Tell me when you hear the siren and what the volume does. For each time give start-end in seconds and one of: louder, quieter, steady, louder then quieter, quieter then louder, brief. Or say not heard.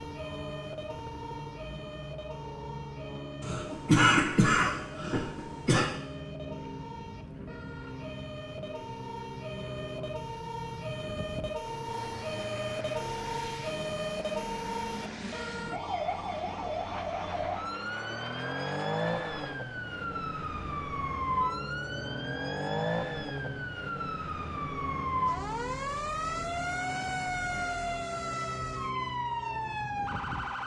0.0-30.6 louder.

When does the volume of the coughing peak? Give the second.
4 s.